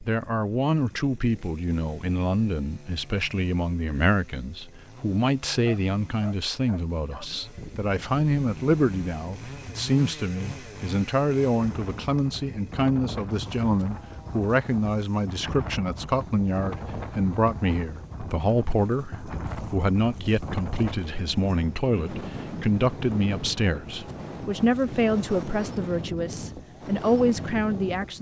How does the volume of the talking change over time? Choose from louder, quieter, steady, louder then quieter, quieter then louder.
steady.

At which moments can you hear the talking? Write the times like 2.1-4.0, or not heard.
0.0-28.1.